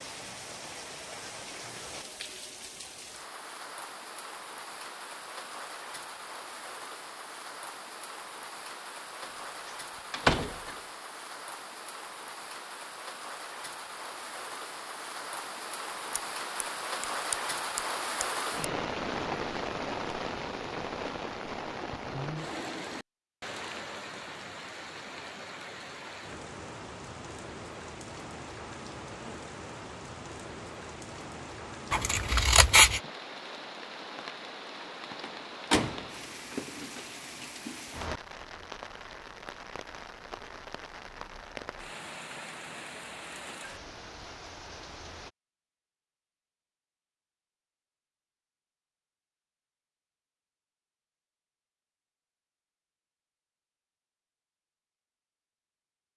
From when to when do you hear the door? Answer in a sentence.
You can hear the door from 10.1 to 10.8 s and from 35.2 to 37.0 s.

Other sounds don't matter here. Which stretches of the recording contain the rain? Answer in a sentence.
The rain can be heard from 0.0 to 45.3 s.